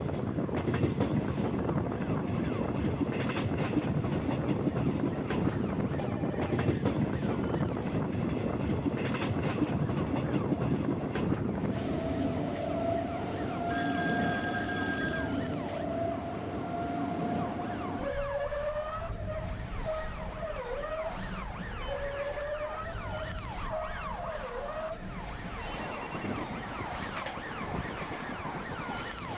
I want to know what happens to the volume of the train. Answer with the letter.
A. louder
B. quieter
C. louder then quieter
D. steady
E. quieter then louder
B.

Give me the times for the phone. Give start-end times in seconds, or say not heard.
6.0-6.5, 13.7-15.3, 24.6-26.4.